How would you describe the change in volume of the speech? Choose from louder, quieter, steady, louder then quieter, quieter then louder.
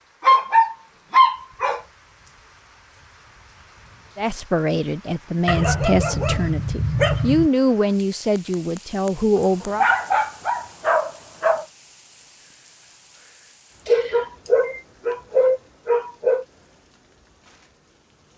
steady.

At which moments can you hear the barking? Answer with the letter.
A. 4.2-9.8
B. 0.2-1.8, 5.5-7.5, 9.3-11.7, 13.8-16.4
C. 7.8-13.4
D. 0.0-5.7
B.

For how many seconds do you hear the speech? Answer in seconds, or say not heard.
6 s.